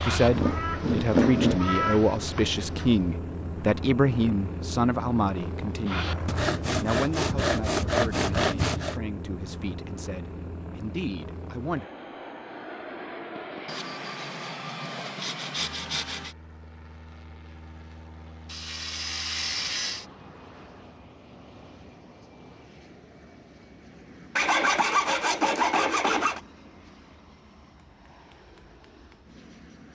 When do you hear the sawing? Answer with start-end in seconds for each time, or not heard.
0.1-1.6, 6.2-9.0, 13.7-16.4, 18.4-20.1, 24.4-26.4.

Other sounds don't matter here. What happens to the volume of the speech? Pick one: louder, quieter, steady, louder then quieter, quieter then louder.
quieter.